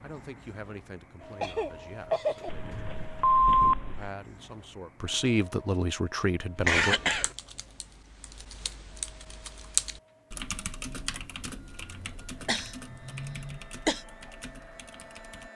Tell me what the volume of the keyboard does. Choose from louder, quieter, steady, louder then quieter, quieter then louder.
louder then quieter.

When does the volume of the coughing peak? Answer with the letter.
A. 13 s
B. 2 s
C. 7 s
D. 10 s
C.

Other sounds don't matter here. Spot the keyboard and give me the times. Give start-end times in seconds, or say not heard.
7.0-15.5.